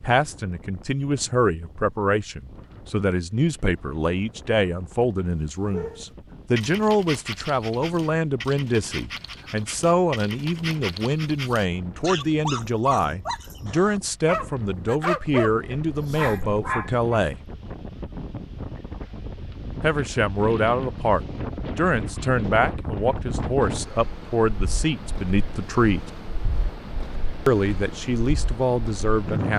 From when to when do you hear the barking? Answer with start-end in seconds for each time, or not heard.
5.7-17.2.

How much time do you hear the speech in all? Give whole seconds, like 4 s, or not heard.
26 s.